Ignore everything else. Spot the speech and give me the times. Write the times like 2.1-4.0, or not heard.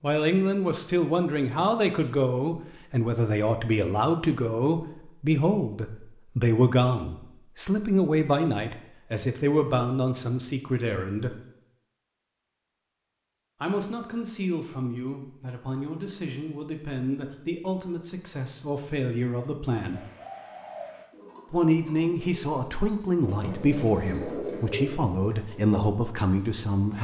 0.0-11.4, 13.6-20.0, 21.5-26.9.